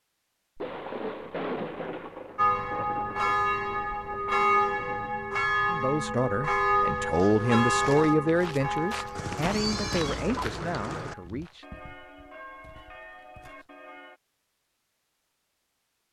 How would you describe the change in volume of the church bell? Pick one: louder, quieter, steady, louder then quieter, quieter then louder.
quieter.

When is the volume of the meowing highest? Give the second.
10 s.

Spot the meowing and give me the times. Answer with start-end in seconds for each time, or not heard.
9.2-11.2.